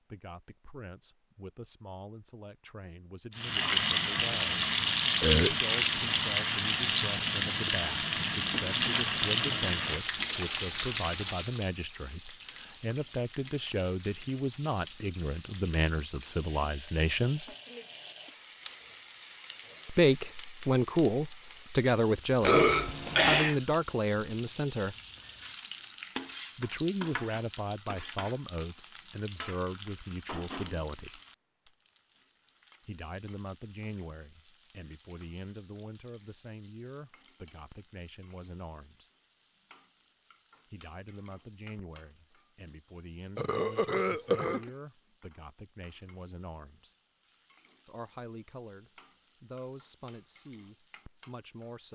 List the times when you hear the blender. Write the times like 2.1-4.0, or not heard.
not heard.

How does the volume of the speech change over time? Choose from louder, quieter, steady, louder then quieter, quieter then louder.
louder then quieter.